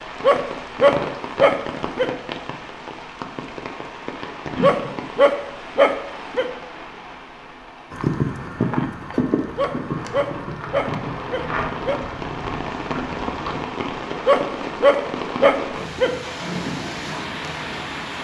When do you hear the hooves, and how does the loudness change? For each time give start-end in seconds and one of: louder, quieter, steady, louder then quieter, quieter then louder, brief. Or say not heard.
7.9-13.6 quieter.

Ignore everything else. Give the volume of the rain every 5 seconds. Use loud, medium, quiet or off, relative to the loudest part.
loud, medium, loud, loud.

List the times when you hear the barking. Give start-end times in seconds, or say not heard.
0.2-2.1, 4.6-6.5, 9.6-12.0, 14.2-16.1.